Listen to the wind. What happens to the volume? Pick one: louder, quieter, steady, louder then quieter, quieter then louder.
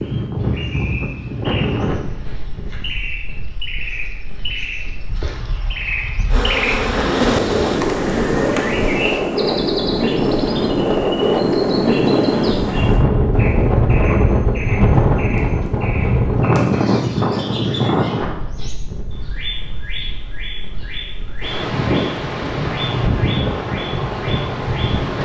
louder then quieter.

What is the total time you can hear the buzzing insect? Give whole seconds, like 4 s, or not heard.
7 s.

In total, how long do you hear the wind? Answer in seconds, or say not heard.
25 s.